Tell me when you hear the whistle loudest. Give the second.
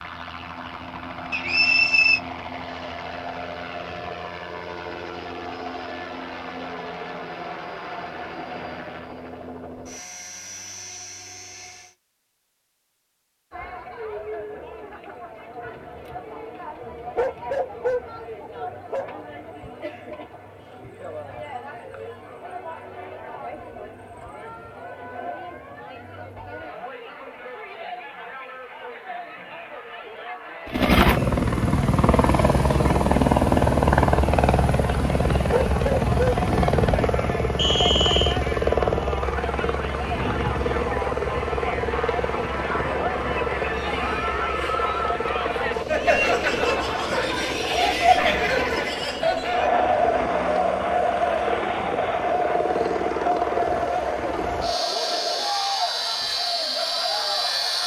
2 s.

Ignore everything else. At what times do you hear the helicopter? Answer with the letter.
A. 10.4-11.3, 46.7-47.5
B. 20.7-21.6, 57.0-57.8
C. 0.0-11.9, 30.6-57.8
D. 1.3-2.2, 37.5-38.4
C.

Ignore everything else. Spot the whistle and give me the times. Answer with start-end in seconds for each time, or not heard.
1.3-2.2, 37.5-38.4.